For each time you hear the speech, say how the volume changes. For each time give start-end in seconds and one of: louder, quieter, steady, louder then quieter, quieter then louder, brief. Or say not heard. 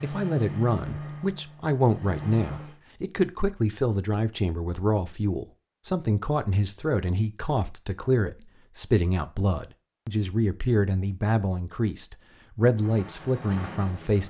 0.0-14.2 steady.